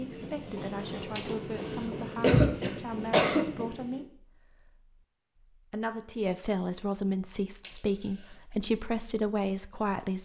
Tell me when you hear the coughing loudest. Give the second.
2 s.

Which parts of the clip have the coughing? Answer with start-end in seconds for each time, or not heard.
1.1-3.6, 7.6-8.4.